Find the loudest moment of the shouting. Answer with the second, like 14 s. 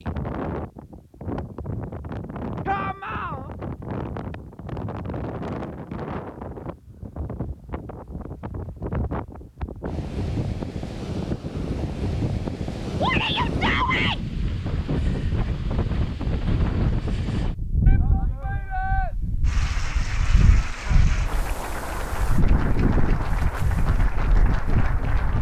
14 s.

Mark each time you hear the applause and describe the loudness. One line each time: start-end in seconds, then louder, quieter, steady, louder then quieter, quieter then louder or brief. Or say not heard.
19.4-25.3 steady.